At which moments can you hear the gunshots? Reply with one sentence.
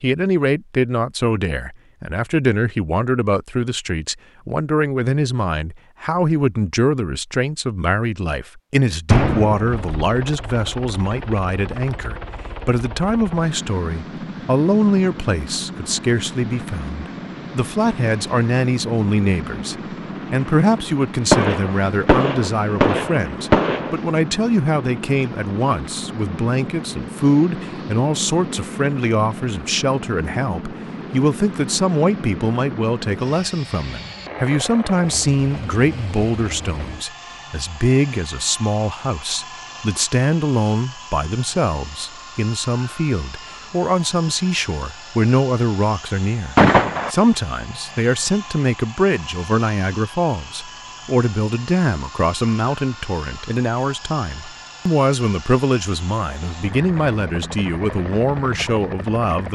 You can hear the gunshots from 9.1 to 9.9 s, from 21.3 to 24.0 s and from 46.5 to 47.1 s.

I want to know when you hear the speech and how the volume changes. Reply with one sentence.
You can hear the speech from 0.0 to 59.5 s, at a steady volume.